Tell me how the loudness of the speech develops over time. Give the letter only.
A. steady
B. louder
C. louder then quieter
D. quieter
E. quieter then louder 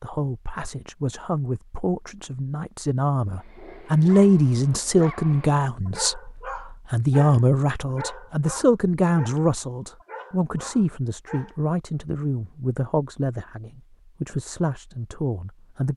C.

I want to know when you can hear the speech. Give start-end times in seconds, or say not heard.
0.0-6.2, 6.9-15.9.